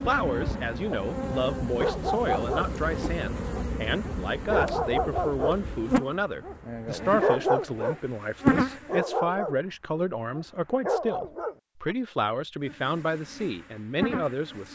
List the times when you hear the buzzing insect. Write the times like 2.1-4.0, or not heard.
0.0-9.1, 12.7-14.7.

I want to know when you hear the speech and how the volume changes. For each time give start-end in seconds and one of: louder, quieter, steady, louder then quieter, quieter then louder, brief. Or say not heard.
0.1-14.7 steady.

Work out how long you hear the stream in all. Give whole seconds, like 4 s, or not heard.
not heard.